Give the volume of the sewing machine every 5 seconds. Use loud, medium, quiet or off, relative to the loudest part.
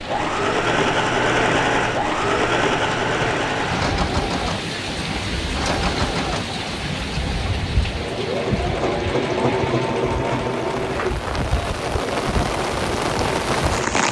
loud, loud, medium.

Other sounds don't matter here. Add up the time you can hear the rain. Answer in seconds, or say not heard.
14 s.